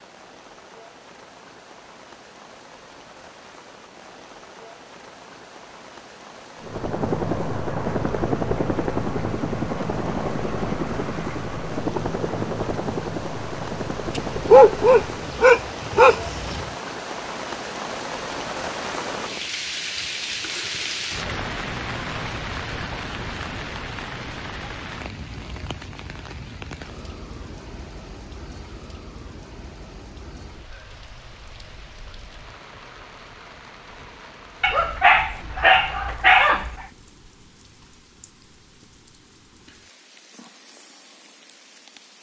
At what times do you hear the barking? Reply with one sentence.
You can hear the barking from 14.2 to 16.6 s and from 34.6 to 36.9 s.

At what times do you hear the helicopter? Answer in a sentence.
The helicopter can be heard from 6.6 to 15.3 s.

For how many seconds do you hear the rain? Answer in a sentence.
The rain can be heard for 42 seconds in total.